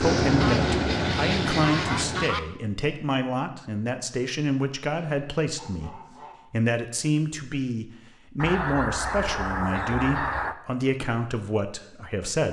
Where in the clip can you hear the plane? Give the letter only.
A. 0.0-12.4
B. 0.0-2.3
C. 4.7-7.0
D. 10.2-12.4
B.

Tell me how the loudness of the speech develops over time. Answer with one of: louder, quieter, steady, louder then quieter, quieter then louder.
steady.